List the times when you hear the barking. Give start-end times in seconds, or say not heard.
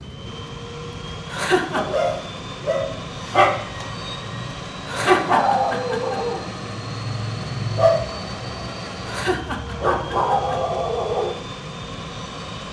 1.7-11.3.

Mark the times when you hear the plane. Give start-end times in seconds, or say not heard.
0.0-12.6.